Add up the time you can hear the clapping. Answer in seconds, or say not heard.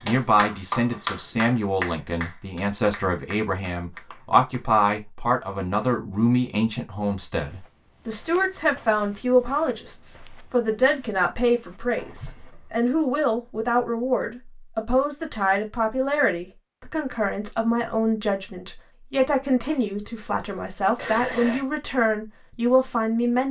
5 s.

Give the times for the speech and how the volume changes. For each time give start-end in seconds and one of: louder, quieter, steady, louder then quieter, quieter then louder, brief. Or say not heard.
0.0-23.4 steady.